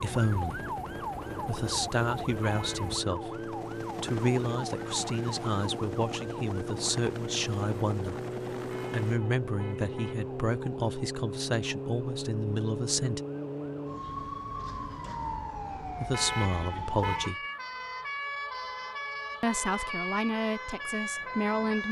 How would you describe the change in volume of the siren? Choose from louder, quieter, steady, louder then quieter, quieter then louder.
steady.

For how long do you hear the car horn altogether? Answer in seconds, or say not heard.
4 s.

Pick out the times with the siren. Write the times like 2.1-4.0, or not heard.
0.0-21.8.